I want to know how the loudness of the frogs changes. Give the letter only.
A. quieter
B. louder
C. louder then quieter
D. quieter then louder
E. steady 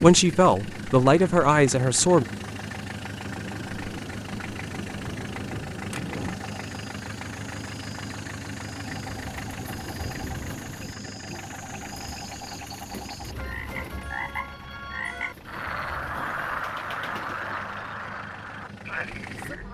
B.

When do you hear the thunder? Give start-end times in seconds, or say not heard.
3.2-6.4.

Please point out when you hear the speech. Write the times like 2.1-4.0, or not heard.
0.0-2.2.